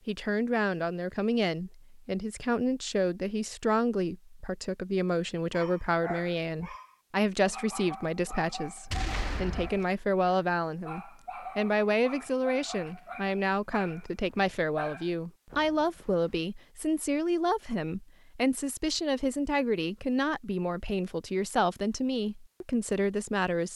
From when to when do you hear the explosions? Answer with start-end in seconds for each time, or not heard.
8.9-9.8.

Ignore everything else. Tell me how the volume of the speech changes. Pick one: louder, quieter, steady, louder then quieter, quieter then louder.
steady.